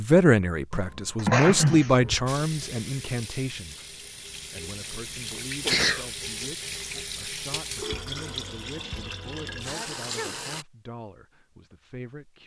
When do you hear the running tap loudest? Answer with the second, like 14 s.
8 s.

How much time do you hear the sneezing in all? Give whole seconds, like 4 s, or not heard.
4 s.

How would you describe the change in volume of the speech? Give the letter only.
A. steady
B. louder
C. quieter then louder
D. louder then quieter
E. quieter
E.